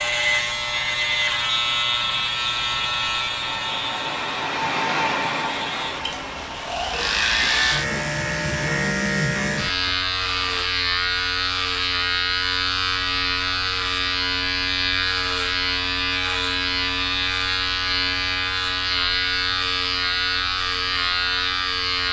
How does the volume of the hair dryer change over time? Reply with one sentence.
The volume of the hair dryer goes up, then down.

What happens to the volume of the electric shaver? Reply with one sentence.
The volume of the electric shaver stays about the same.